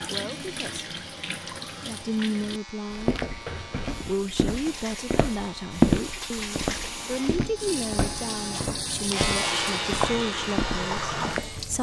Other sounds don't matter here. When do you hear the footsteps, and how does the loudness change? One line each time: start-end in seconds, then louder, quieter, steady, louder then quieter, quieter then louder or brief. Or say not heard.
2.9-11.7 louder then quieter.